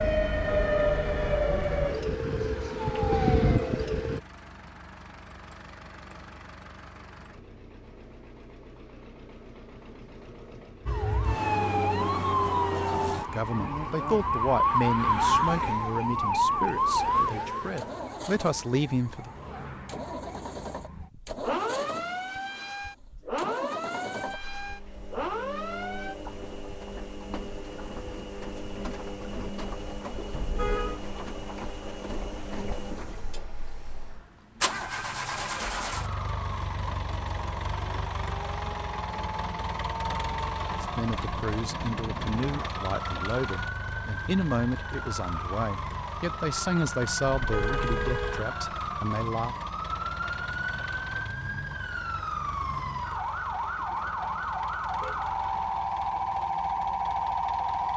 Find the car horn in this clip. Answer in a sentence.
The car horn can be heard from 0.4 to 1.4 s, from 30.3 to 31.0 s and from 47.4 to 48.5 s.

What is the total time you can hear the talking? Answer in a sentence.
The talking can be heard for 15 seconds in total.